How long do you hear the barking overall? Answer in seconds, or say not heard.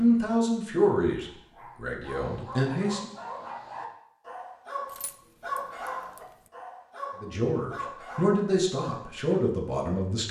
8 s.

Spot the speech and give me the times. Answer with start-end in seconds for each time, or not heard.
0.0-3.1, 7.2-10.2.